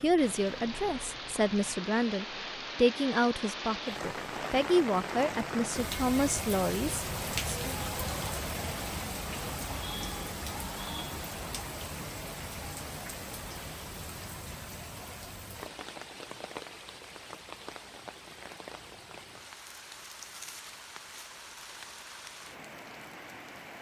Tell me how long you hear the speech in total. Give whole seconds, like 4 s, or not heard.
8 s.